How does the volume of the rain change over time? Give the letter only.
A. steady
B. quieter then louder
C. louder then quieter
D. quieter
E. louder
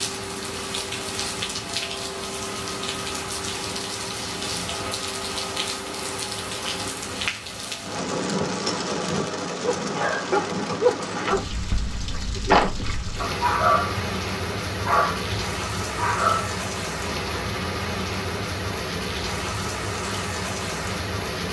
A.